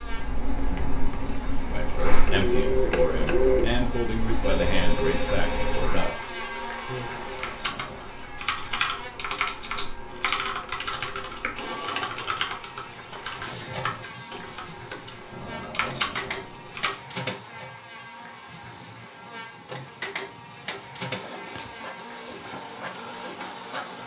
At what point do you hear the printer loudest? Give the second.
3 s.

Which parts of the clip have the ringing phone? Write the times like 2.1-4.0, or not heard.
4.4-5.9.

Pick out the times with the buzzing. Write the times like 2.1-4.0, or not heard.
0.0-24.0.